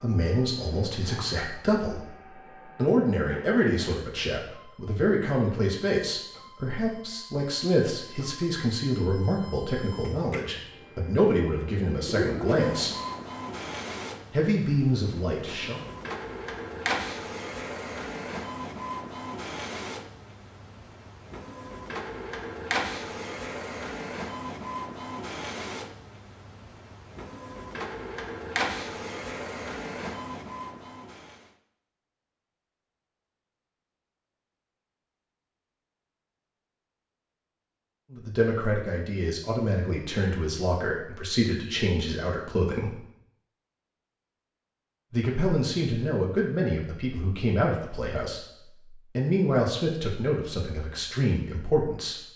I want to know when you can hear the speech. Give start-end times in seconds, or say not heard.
0.0-2.1, 2.8-12.9, 14.3-15.8, 38.1-43.0, 45.1-52.2.